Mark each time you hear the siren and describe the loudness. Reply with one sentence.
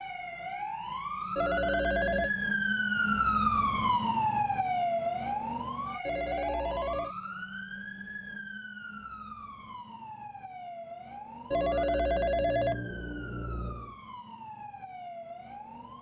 The siren can be heard from 0.0 to 15.9 s, getting quieter.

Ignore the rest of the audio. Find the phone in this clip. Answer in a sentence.
You can hear the phone from 1.4 to 2.3 s, from 6.0 to 7.2 s and from 11.5 to 13.9 s.